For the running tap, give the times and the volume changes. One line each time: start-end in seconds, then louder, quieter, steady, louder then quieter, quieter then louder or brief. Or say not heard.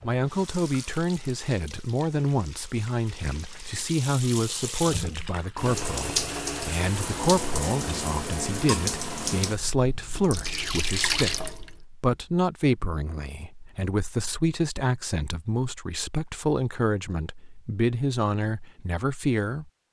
0.0-11.8 louder.